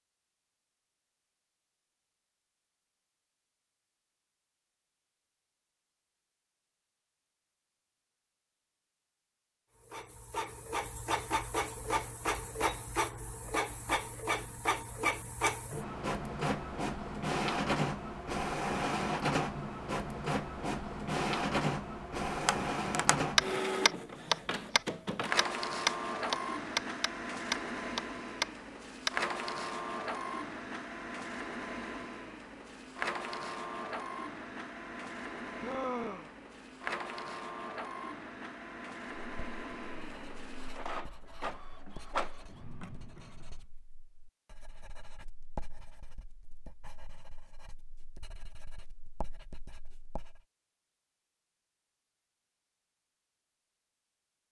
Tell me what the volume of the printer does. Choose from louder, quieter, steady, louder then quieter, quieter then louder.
quieter.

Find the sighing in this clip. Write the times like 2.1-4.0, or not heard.
35.6-36.3.